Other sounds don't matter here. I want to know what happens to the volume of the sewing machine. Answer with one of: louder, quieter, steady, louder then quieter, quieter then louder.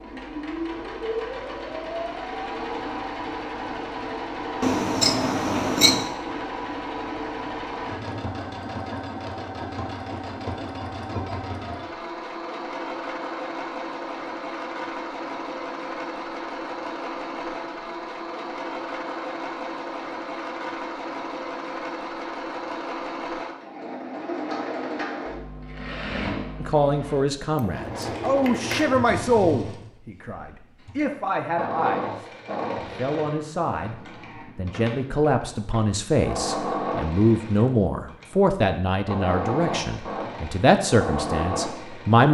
steady.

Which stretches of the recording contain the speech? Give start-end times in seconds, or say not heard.
26.6-42.2.